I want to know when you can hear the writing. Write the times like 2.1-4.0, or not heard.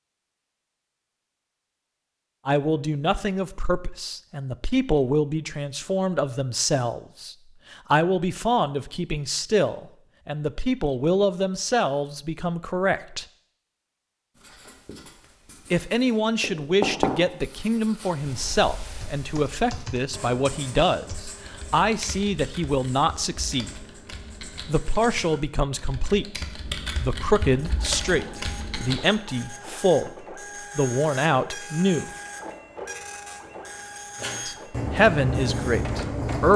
14.3-25.1, 34.1-36.5.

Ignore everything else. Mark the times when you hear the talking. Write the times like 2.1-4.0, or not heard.
2.5-13.2, 15.7-23.8, 24.6-32.1, 34.5-36.5.